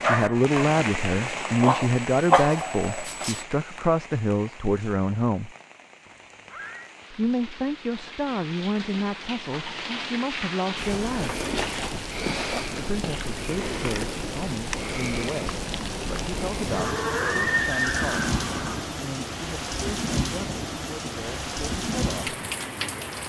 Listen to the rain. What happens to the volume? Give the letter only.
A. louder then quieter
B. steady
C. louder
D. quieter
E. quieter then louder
E.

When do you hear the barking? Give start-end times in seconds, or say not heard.
0.0-3.4.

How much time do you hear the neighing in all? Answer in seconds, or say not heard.
3 s.